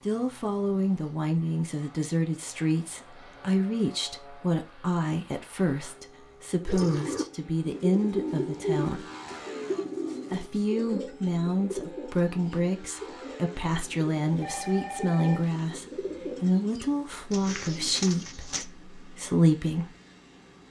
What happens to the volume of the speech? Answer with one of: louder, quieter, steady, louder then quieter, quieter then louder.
steady.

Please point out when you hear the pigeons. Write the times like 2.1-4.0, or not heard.
6.7-18.6.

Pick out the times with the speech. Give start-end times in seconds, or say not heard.
0.1-9.1, 10.3-19.9.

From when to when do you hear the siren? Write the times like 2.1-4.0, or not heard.
not heard.